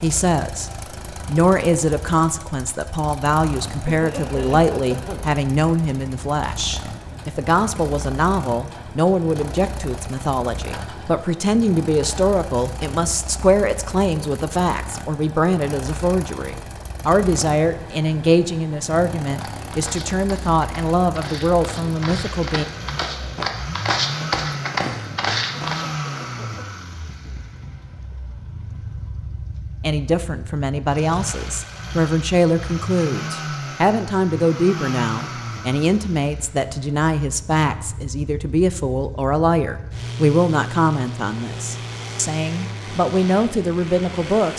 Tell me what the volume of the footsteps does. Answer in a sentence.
The volume of the footsteps goes up.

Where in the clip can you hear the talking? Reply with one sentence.
The talking can be heard from 0.0 to 22.6 s and from 29.8 to 44.5 s.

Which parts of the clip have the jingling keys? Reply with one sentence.
The jingling keys can't be heard in this clip.